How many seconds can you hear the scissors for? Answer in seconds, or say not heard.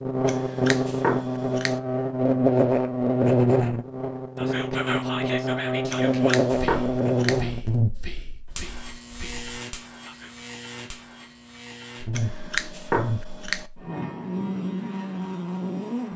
5 s.